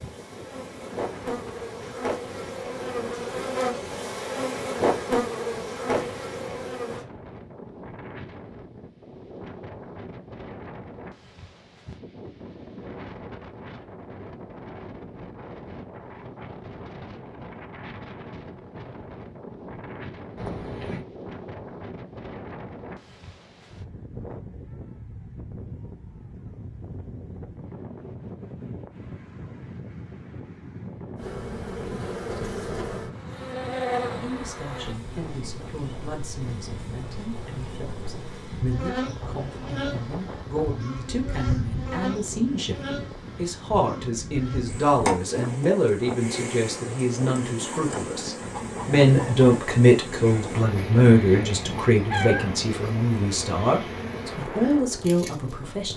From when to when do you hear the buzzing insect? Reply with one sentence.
You can hear the buzzing insect from 0.0 to 7.0 s and from 31.1 to 55.9 s.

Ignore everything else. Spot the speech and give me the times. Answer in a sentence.
You can hear the speech from 34.2 to 55.9 s.